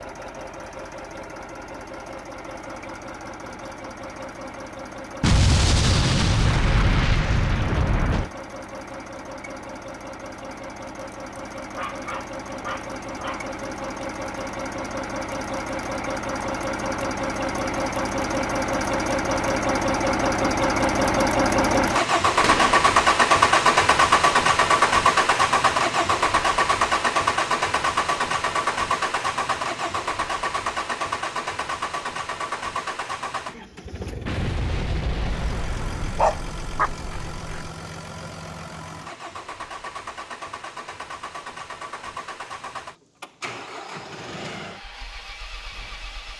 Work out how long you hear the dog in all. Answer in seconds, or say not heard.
3 s.